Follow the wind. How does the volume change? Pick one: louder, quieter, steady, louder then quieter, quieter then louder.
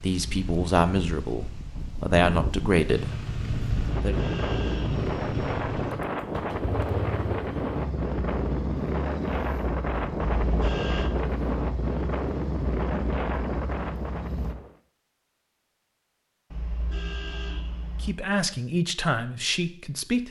louder.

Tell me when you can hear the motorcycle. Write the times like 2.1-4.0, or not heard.
2.9-14.6.